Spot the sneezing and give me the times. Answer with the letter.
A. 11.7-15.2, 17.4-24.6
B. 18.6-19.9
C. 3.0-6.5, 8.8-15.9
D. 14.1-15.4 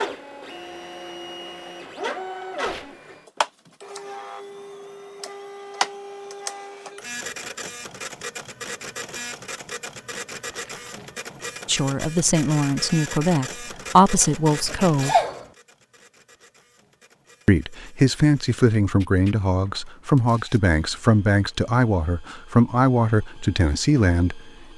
D.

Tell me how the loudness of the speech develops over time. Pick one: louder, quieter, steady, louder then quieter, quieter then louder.
steady.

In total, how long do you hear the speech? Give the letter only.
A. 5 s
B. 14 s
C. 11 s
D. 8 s
C.